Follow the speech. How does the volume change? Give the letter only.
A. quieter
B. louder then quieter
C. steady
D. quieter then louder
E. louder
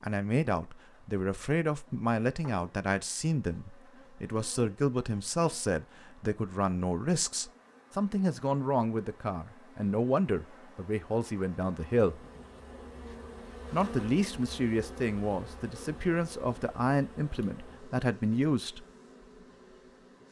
C.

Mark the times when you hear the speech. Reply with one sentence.
The speech can be heard from 0.0 to 12.2 s and from 13.7 to 18.9 s.